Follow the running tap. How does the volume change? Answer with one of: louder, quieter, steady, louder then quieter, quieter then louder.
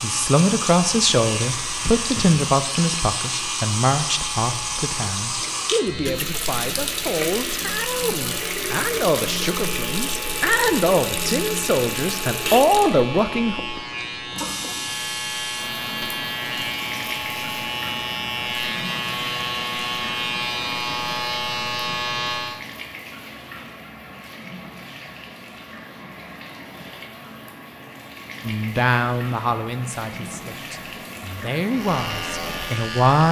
quieter.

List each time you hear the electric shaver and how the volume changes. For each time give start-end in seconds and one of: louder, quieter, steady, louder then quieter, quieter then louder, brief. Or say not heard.
0.0-22.6 louder
31.7-33.2 brief.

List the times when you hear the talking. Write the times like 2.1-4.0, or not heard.
0.0-13.6, 28.4-33.2.